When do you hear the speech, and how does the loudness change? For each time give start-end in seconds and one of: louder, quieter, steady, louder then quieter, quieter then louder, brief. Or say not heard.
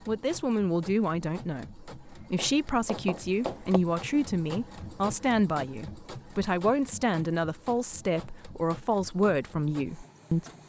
0.1-10.4 steady.